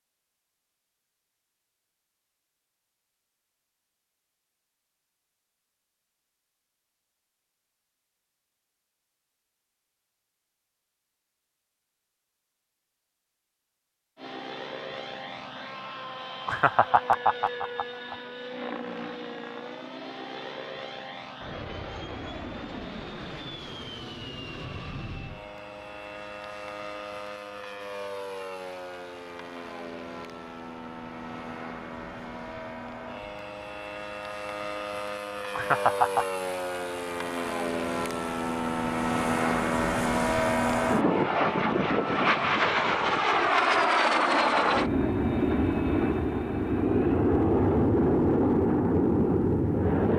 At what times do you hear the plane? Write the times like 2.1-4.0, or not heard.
14.2-50.1.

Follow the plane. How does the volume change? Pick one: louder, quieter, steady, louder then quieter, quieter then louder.
louder.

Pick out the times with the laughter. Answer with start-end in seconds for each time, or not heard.
16.4-18.1, 35.5-36.2.